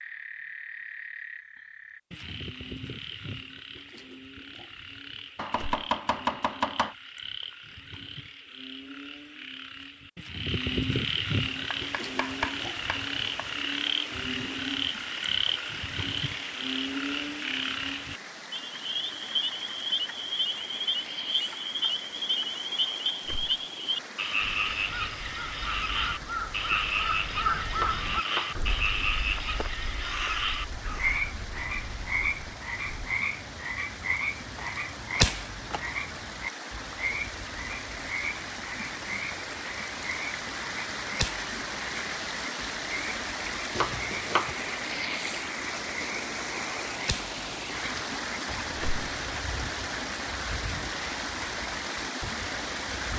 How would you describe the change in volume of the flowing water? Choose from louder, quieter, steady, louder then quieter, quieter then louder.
louder.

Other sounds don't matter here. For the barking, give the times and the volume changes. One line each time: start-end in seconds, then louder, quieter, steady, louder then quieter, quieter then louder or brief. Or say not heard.
not heard.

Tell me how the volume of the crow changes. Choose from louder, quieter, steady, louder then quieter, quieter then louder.
louder then quieter.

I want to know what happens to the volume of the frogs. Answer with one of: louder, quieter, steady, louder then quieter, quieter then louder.
louder then quieter.